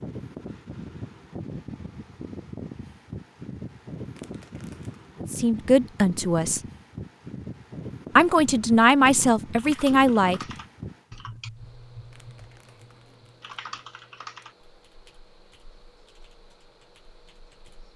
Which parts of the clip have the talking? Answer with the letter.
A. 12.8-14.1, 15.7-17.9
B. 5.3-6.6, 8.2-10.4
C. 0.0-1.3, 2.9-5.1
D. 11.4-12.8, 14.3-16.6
B.